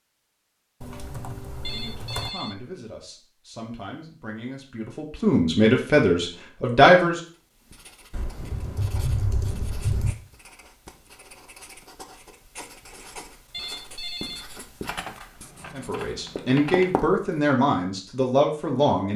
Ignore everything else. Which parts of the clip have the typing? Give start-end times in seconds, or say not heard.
0.8-2.3, 8.1-10.2, 14.8-16.9.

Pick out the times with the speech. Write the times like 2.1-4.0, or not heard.
1.7-7.2, 15.8-19.1.